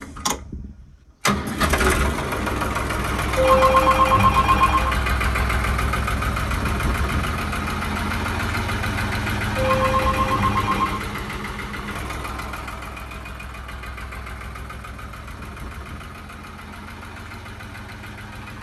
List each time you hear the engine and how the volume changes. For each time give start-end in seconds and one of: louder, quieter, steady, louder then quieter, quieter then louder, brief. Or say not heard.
0.0-18.5 quieter.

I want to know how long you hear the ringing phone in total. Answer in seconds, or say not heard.
3 s.